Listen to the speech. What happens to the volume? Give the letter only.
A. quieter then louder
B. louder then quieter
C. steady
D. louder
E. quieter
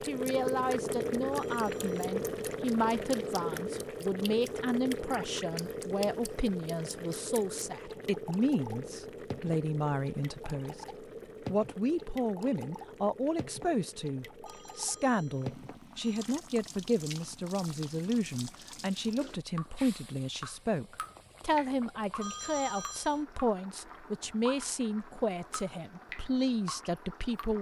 C.